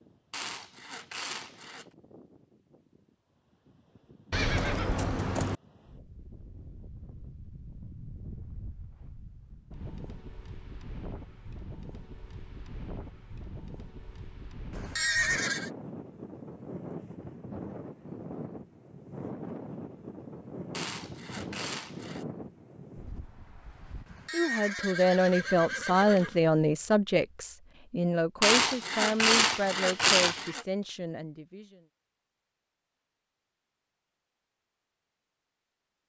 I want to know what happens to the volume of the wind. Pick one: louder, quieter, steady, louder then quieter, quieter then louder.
louder.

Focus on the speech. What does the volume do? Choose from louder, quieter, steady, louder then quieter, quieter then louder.
quieter.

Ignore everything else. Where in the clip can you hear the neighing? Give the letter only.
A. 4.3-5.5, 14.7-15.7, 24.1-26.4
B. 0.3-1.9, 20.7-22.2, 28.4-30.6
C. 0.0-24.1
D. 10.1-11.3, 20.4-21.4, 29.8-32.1
A.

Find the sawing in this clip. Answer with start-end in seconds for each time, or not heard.
0.3-1.9, 20.7-22.2, 28.4-30.6.